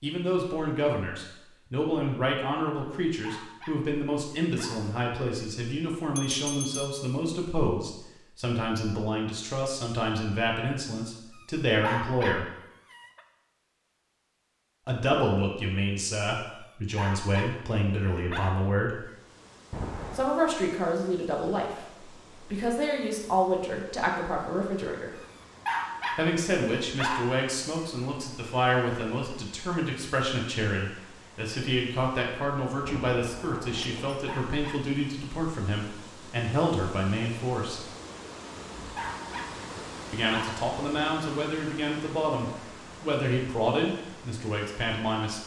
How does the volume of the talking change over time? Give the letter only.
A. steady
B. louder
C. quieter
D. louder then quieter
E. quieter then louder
A.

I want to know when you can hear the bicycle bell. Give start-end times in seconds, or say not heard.
6.2-7.0, 19.7-20.3, 32.9-34.2.